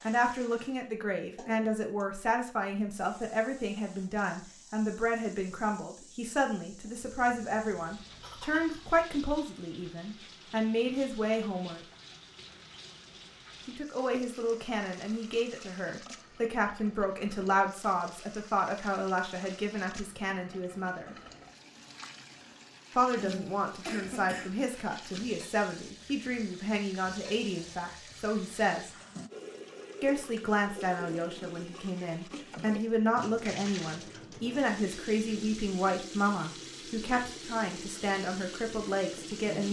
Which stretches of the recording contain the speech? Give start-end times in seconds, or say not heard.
0.0-11.8, 13.7-21.1, 22.9-28.9, 30.0-39.6.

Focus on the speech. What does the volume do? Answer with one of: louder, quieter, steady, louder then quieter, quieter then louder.
steady.